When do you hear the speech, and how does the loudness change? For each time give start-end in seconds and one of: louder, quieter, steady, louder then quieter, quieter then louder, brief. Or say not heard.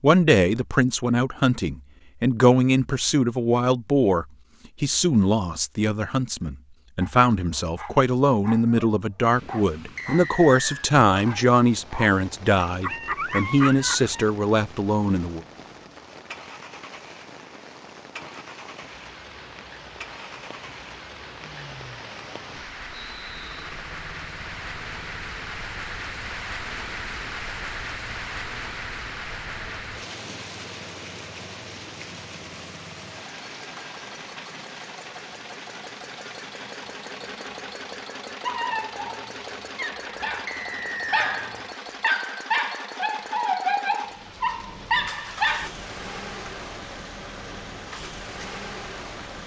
0.0-15.4 steady.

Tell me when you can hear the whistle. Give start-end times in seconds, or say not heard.
9.9-10.9, 22.9-23.6, 40.5-41.3.